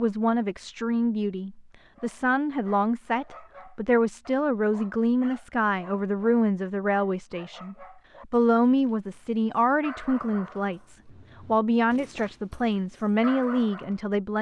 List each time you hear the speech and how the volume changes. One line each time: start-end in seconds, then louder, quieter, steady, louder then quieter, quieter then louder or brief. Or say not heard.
0.0-14.3 steady.